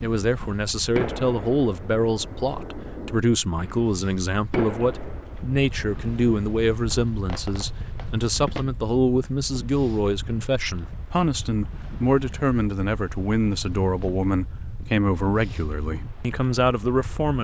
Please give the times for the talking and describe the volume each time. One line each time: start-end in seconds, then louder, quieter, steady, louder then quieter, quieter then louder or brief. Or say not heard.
0.0-17.4 steady.